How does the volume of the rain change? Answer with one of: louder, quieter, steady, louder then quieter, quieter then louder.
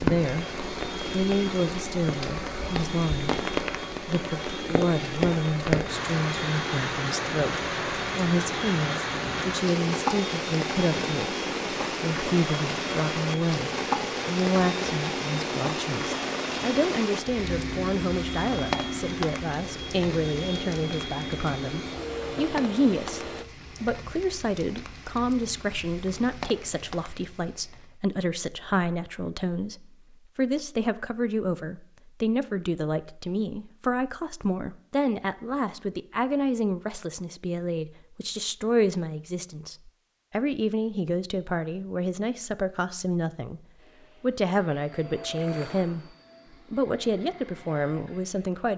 quieter.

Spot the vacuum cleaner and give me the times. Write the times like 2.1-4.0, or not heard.
0.1-23.4, 43.8-48.6.